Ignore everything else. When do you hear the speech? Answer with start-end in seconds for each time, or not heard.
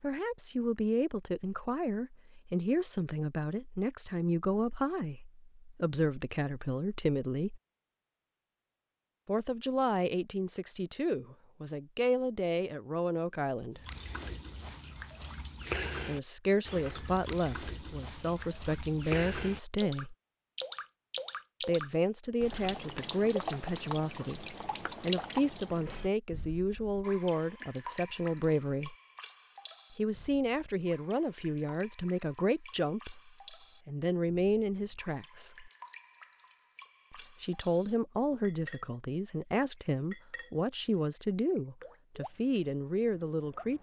0.0-7.6, 9.2-13.8, 16.1-20.1, 21.6-28.9, 29.9-35.7, 37.1-43.7.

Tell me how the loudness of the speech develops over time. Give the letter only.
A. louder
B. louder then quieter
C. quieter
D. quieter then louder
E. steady
E.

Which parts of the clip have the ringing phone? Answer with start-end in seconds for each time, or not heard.
not heard.